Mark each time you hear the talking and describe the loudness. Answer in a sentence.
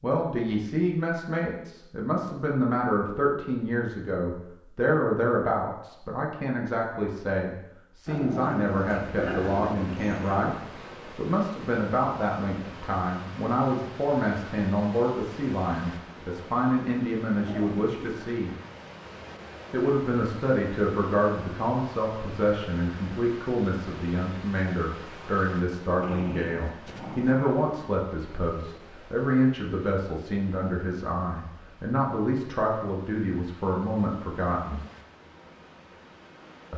You can hear the talking from 0.0 to 18.6 s, at a steady volume; and from 19.7 to 34.8 s, at a steady volume.